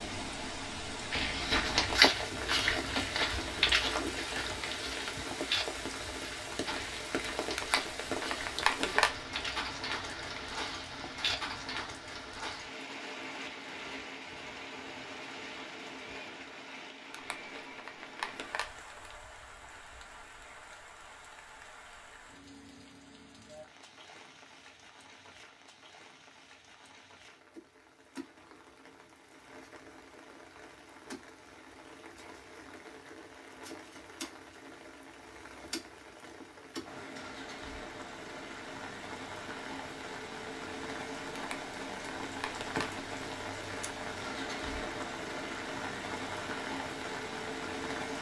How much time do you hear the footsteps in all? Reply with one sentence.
You can hear the footsteps for 11 seconds altogether.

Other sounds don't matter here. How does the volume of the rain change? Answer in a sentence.
The loudness of the rain goes down, then up.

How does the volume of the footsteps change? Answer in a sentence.
The volume of the footsteps goes down.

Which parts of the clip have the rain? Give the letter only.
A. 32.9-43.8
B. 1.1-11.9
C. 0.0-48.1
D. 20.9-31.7
C.